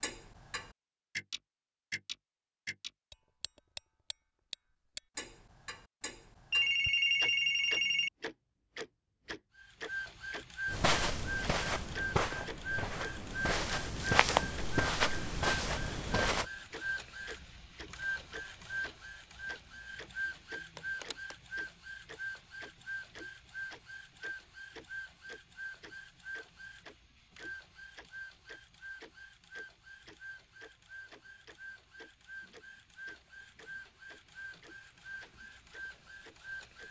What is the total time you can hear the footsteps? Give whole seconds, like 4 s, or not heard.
6 s.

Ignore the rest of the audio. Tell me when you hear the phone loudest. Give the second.
7 s.